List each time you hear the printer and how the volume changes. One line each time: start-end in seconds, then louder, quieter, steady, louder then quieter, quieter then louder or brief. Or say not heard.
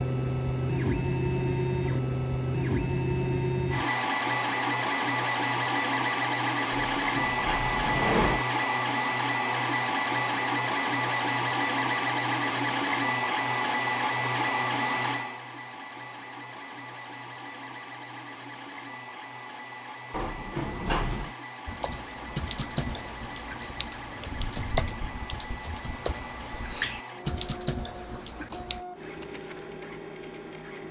0.0-30.8 quieter.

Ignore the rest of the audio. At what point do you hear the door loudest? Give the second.
8 s.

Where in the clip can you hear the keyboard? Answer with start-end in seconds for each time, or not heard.
21.6-28.9.